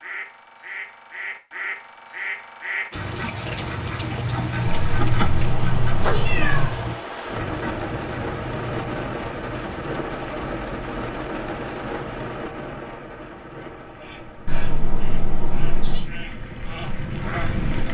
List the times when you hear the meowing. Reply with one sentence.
You can hear the meowing from 4.7 to 6.7 s and from 14.4 to 16.1 s.